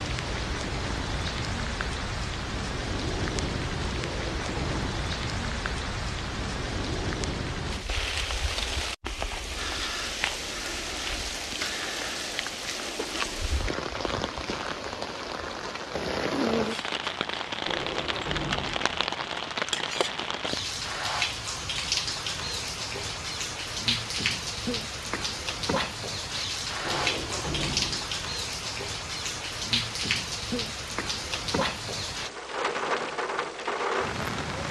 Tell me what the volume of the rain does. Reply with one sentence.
The loudness of the rain stays about the same.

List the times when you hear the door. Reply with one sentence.
The door can be heard from 4.0 to 5.1 s, from 17.6 to 18.9 s and from 26.9 to 28.1 s.